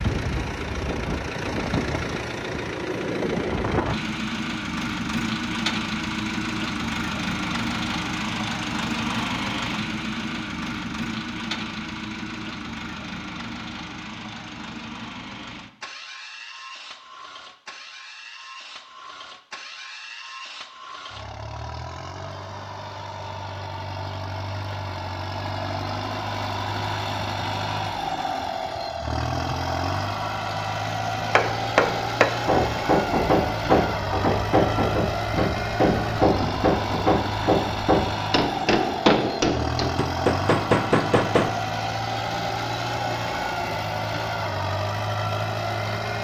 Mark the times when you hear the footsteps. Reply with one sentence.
The footsteps can't be heard in this clip.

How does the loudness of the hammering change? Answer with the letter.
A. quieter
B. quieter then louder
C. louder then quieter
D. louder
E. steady
E.